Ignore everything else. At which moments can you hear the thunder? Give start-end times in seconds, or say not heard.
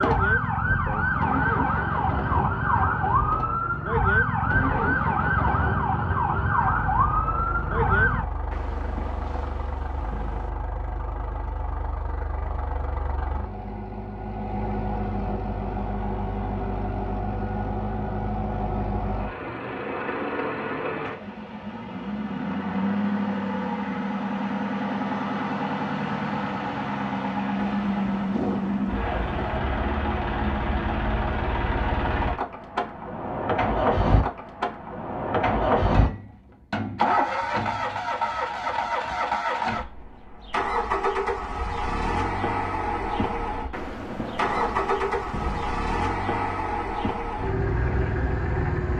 8.5-10.5, 27.6-29.6, 43.7-45.8.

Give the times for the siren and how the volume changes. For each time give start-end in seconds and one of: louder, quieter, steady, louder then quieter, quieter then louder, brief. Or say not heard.
0.0-8.2 steady.